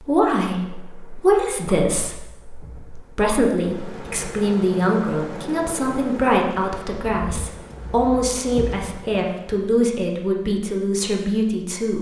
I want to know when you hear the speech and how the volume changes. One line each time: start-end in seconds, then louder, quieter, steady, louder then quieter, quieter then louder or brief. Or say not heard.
0.0-11.9 steady.